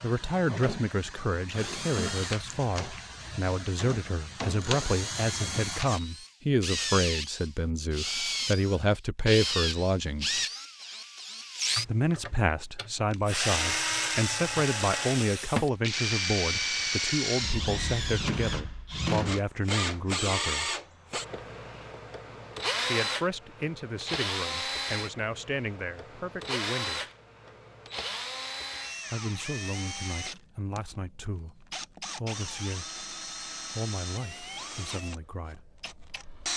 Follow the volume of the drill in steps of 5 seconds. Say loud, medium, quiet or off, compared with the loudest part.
medium, loud, loud, loud, loud, medium, medium, medium.